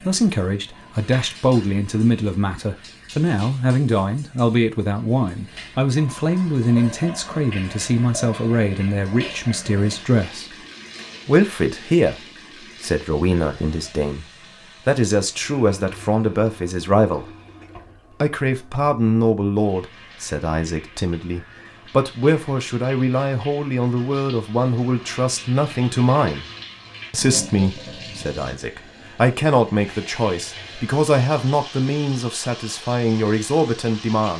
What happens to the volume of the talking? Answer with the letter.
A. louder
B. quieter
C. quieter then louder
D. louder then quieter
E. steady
E.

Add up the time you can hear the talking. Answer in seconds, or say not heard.
32 s.